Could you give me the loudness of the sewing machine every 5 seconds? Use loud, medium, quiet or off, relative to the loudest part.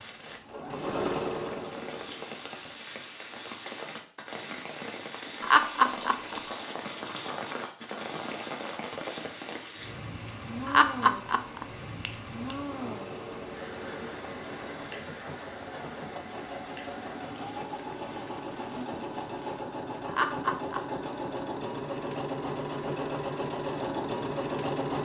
loud, off, medium, medium, loud.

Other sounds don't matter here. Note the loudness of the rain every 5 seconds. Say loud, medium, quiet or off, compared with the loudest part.
loud, loud, loud, medium, off.